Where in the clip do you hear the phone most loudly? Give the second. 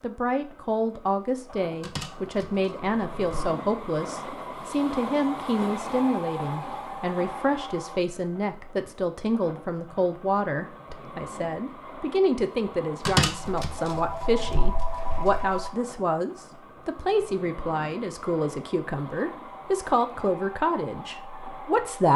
13 s.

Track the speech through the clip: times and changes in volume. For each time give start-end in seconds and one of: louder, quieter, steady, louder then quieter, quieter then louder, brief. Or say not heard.
0.0-22.1 steady.